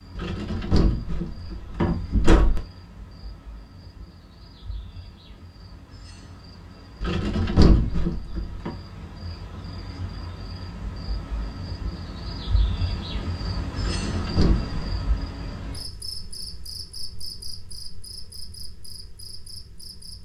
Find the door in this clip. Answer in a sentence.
The door can be heard from 0.1 to 2.6 s, from 7.0 to 8.7 s and from 13.8 to 14.9 s.